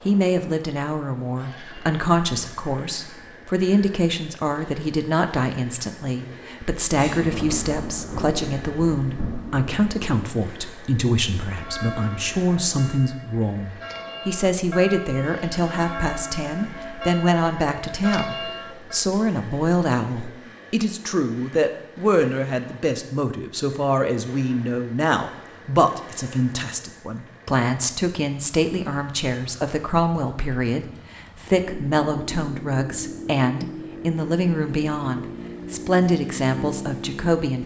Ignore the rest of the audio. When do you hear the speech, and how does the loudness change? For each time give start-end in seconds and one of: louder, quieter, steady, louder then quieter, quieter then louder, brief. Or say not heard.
0.1-37.6 steady.